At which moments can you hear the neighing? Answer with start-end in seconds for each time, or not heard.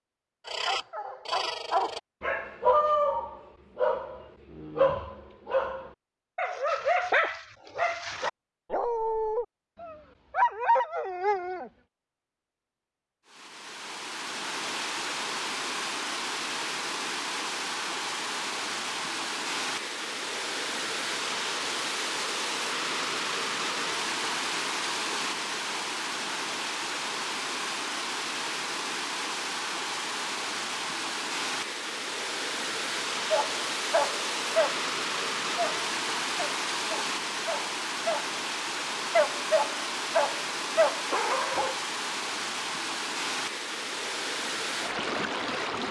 not heard.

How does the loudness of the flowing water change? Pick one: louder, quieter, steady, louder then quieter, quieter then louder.
steady.